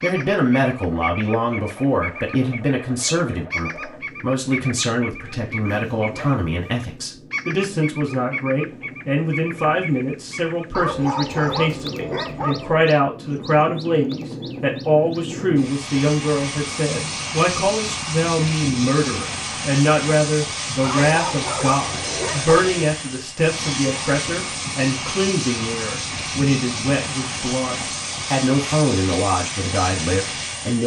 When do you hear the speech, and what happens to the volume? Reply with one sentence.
The speech can be heard from 0.0 to 30.8 s, at a steady volume.